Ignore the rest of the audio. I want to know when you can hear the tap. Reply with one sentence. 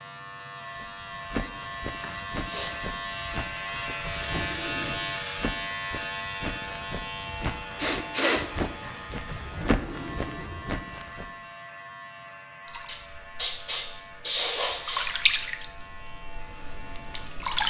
You can hear the tap from 12.7 to 17.6 s.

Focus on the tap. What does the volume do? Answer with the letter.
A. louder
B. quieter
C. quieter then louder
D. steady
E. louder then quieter
E.